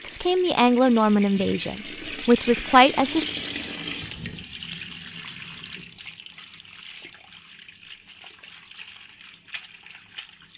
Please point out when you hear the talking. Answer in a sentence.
The talking can be heard from 0.1 to 3.2 s.